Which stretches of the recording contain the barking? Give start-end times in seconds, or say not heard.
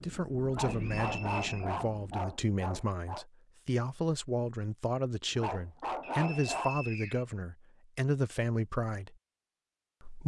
0.5-3.2, 5.3-6.8.